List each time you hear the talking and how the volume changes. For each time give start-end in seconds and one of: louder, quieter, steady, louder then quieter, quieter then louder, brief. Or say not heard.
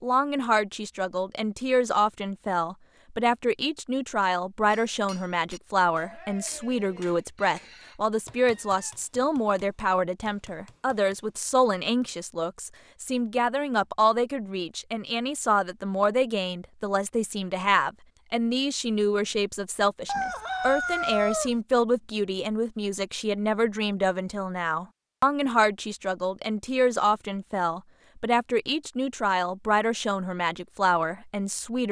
0.0-31.8 steady.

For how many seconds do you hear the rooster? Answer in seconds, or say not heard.
3 s.